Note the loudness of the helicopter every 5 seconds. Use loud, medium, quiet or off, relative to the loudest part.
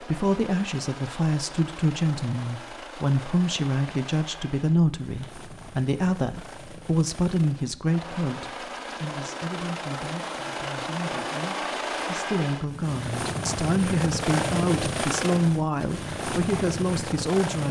medium, medium, loud, loud.